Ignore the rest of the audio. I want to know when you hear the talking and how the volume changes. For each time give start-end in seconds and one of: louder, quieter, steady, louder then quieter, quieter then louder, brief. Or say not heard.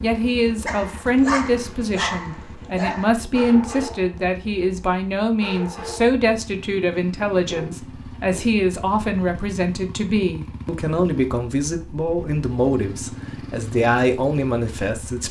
0.0-15.2 steady.